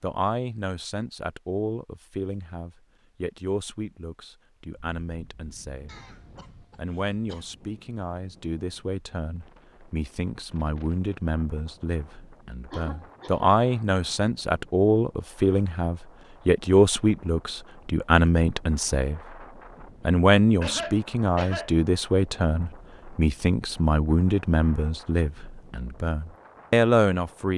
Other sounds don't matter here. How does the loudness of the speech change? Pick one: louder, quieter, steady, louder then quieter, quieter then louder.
louder.